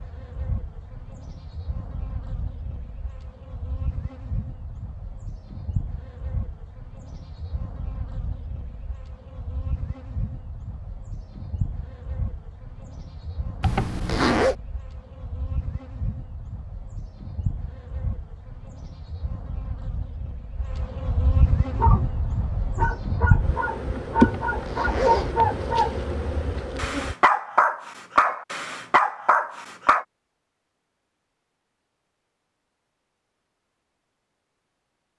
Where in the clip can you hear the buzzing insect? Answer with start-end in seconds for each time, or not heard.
0.0-27.1.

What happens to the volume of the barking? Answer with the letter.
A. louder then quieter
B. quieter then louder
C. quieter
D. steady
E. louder
E.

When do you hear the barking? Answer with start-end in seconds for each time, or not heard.
21.6-30.1.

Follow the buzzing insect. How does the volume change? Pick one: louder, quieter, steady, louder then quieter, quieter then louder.
louder.